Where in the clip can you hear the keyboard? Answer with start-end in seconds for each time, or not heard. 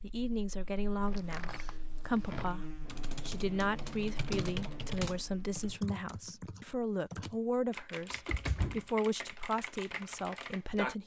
2.9-10.9.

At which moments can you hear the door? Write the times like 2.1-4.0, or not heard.
1.1-2.5, 8.1-8.8.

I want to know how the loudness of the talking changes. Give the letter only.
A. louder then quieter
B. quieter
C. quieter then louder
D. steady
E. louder
D.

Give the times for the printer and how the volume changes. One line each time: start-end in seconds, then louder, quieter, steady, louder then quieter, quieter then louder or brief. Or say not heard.
not heard.